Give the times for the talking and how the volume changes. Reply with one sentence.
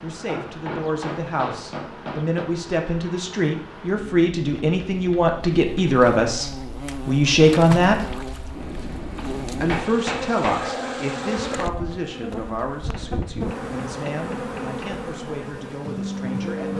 The talking can be heard from 0.0 to 8.1 s, getting louder; and from 9.6 to 16.7 s, getting quieter.